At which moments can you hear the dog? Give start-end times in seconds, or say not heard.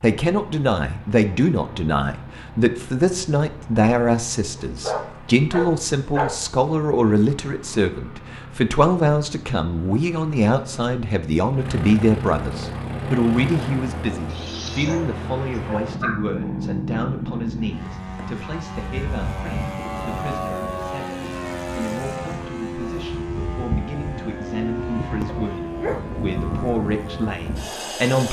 4.5-6.5, 14.3-16.2, 25.2-26.0.